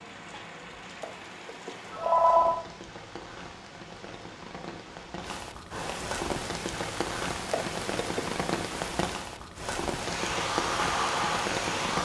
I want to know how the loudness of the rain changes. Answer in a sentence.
The volume of the rain goes up.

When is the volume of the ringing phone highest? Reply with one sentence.
The volume of the ringing phone peaks at 2 seconds.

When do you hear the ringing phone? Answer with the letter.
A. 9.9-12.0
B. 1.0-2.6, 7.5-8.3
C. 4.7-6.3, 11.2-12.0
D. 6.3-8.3
B.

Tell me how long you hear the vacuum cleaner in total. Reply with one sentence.
You can hear the vacuum cleaner for 2 seconds altogether.